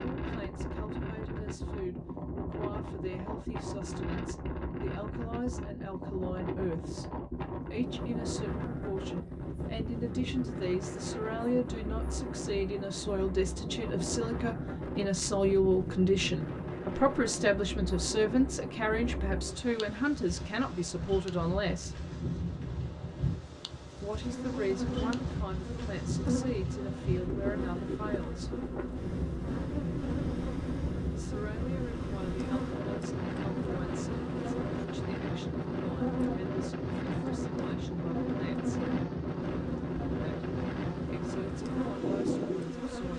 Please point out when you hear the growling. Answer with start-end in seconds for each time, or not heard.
not heard.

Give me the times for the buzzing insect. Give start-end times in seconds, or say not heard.
24.2-43.1.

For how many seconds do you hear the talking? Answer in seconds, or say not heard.
37 s.